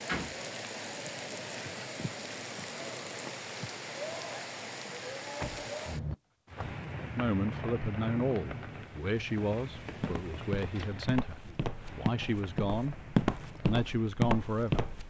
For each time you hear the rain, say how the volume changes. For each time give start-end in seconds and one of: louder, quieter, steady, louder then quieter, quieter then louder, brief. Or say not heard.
0.0-15.0 quieter.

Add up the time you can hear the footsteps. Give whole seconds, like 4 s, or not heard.
5 s.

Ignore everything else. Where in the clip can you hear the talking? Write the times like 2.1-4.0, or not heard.
7.0-12.9, 13.6-14.8.